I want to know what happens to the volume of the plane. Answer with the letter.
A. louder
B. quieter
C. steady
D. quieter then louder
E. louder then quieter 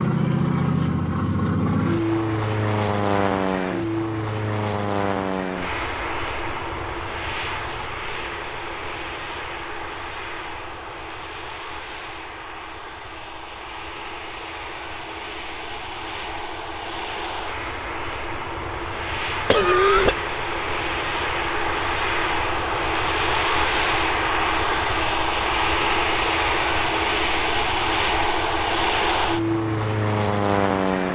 D.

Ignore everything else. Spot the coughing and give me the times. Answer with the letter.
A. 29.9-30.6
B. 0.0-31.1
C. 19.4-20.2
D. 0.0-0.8
C.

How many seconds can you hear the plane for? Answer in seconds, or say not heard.
31 s.